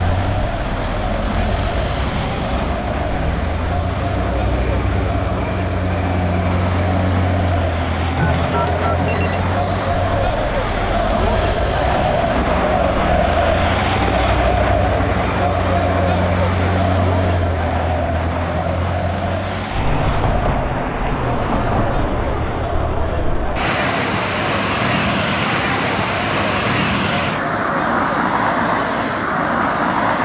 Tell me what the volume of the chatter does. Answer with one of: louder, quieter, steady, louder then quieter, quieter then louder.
louder then quieter.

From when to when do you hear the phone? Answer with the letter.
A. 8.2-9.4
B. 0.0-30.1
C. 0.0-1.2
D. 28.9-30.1
A.